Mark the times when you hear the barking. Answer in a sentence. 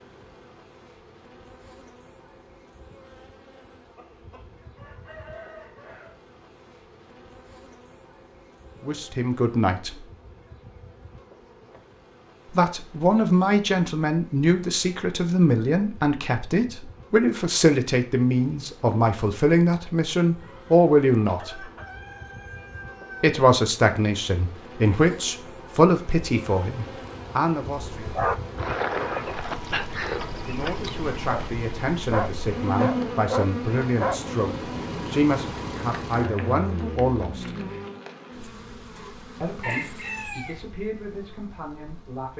The barking can be heard from 27.9 to 34.2 s.